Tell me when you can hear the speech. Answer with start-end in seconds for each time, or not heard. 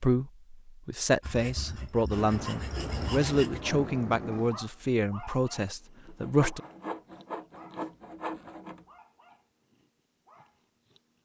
0.0-6.6.